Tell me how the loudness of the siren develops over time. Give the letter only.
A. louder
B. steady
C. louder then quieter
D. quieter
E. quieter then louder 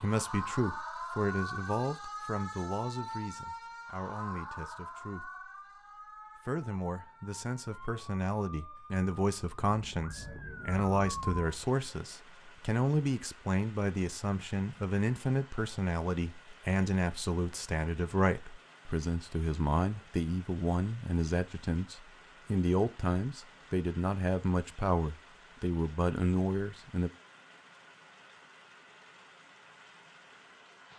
E.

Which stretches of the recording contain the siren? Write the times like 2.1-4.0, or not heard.
0.0-11.6.